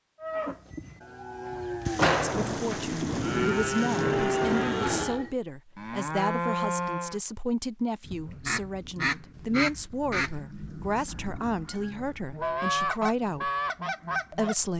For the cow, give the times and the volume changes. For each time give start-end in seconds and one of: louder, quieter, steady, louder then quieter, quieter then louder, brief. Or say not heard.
0.2-7.2 louder.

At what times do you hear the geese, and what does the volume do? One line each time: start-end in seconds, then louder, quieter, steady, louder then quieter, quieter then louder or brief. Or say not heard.
8.1-14.6 quieter then louder.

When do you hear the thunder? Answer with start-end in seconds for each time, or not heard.
1.9-5.2.